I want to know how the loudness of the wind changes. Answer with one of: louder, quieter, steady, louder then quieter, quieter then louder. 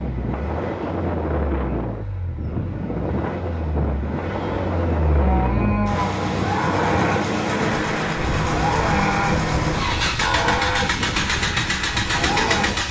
steady.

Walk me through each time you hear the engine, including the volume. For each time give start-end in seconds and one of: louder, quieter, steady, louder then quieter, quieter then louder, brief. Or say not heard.
0.0-12.8 louder.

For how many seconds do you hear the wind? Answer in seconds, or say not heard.
13 s.